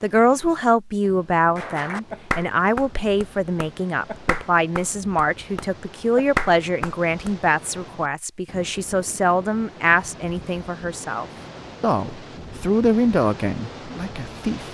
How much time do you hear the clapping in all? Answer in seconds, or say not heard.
6 s.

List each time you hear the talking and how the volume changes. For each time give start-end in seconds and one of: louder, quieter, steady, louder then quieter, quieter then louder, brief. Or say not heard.
0.0-14.6 steady.